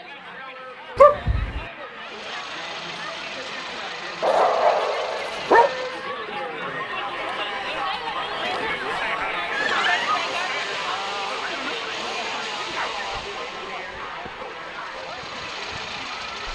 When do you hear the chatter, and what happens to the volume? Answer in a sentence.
You can hear the chatter from 0.0 to 16.5 s, getting louder then quieter.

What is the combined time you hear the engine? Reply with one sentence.
The engine can be heard for 11 seconds in total.